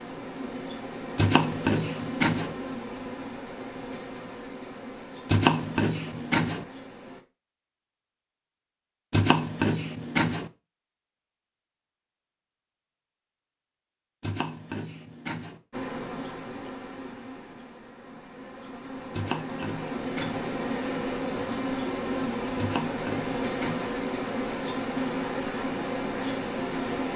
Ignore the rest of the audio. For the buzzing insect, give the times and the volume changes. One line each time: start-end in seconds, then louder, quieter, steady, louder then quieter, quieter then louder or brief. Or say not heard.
0.0-7.2 quieter
15.7-27.1 louder.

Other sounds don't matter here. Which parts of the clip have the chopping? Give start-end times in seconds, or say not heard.
1.1-2.5, 5.2-6.7, 9.1-10.5, 14.2-15.6, 19.1-20.5, 22.6-23.9.